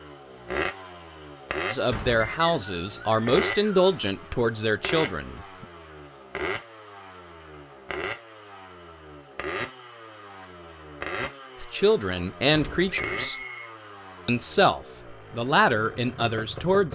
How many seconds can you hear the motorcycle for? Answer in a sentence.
The motorcycle can be heard for 17 seconds in total.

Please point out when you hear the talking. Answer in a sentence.
You can hear the talking from 1.7 to 5.7 s, from 11.6 to 13.3 s and from 14.2 to 16.8 s.